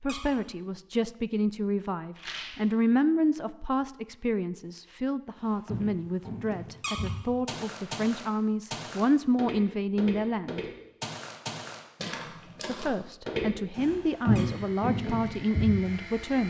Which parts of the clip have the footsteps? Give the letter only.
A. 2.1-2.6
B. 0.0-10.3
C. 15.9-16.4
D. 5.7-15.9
D.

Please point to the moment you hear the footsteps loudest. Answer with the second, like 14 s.
14 s.